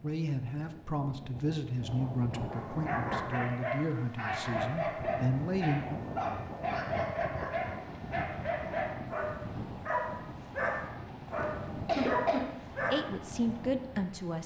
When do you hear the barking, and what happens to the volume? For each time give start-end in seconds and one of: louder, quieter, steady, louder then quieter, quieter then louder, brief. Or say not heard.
2.5-13.3 steady.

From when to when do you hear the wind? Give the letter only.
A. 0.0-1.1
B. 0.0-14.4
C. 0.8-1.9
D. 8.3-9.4
B.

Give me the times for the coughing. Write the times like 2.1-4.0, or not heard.
11.3-12.4.